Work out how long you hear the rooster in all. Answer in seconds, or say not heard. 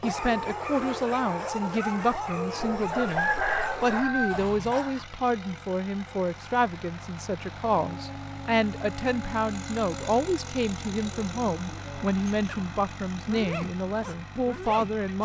2 s.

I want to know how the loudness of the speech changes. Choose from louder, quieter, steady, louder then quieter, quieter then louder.
steady.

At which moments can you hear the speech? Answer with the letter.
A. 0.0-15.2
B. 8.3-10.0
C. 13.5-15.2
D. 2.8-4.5
A.